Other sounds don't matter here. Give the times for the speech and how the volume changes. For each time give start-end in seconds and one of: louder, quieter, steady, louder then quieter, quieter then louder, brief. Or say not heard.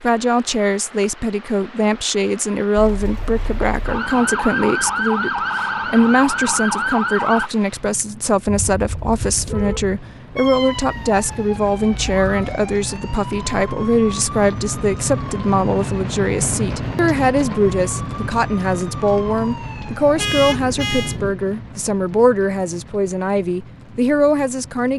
0.0-24.9 steady.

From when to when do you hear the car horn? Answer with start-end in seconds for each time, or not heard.
8.4-10.0, 20.1-21.1.